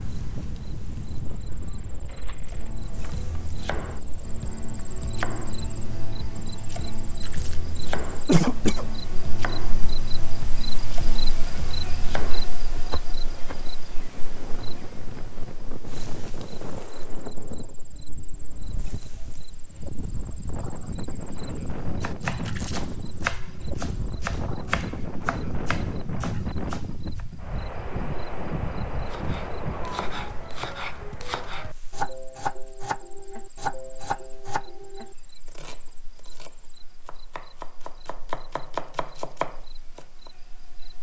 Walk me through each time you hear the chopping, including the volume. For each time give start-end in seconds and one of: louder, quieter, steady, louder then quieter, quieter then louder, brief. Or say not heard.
2.5-13.6 steady
21.9-27.2 louder then quieter
29.1-40.3 quieter then louder.